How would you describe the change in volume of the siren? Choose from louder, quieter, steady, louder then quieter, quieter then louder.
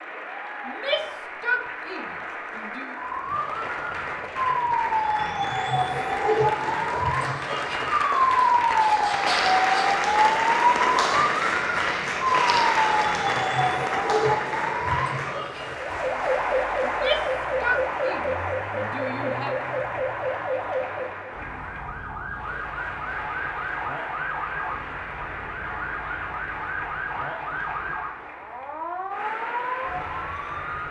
quieter.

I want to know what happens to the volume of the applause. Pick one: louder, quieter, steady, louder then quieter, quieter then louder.
louder then quieter.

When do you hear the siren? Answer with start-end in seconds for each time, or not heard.
3.0-30.8.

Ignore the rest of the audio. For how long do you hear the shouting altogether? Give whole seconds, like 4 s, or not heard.
5 s.